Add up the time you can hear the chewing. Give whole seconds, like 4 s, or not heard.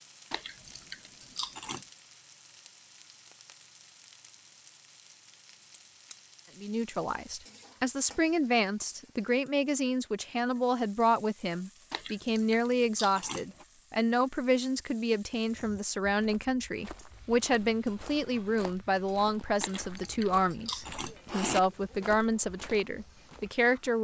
5 s.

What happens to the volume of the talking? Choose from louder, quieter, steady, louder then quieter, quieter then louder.
steady.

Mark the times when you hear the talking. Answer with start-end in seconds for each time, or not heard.
6.6-23.9.